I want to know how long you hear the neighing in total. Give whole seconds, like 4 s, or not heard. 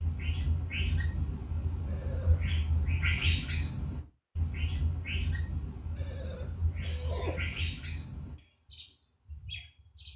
3 s.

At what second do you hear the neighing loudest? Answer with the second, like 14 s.
7 s.